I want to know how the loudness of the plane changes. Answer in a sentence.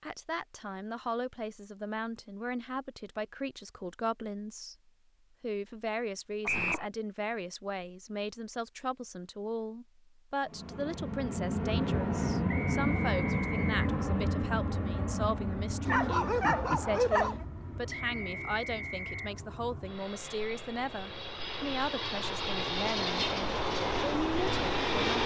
The loudness of the plane goes down, then up.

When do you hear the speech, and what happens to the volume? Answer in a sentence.
The speech can be heard from 0.0 to 4.8 s, at a steady volume; and from 5.4 to 25.2 s, at a steady volume.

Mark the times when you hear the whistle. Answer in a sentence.
The whistle can be heard from 6.5 to 6.9 s, from 12.4 to 13.8 s and from 17.9 to 19.3 s.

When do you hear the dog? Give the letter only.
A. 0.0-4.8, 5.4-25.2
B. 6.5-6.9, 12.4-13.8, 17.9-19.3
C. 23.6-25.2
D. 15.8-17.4
D.